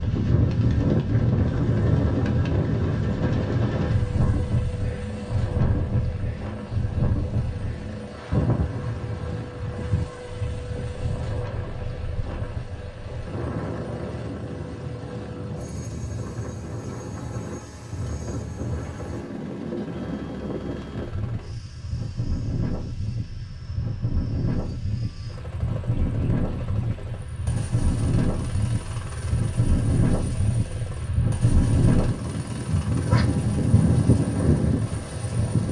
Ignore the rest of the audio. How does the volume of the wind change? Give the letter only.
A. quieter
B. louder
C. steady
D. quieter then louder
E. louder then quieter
D.